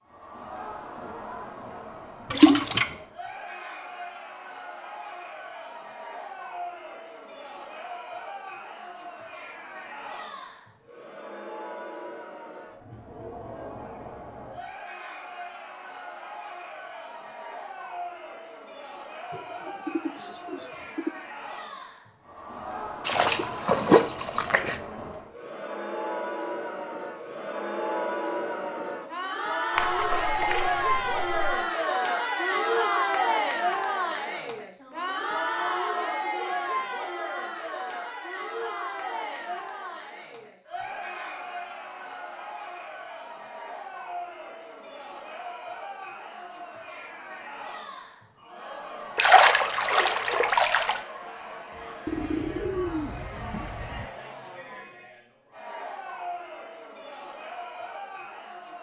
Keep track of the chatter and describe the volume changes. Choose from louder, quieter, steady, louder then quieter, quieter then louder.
louder then quieter.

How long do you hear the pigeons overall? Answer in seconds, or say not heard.
4 s.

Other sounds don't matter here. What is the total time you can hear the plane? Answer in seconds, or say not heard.
not heard.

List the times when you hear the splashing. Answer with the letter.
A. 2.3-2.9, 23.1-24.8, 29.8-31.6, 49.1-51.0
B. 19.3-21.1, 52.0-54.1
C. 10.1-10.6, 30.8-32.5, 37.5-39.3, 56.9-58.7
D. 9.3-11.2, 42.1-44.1
A.